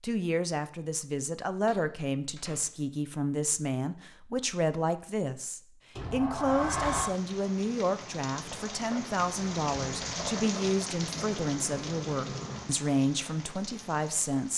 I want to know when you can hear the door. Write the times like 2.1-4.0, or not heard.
1.6-3.0, 6.0-7.2, 11.1-12.7.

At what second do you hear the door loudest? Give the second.
7 s.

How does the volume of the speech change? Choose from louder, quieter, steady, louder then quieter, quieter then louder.
steady.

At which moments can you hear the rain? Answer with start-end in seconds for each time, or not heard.
7.0-14.5.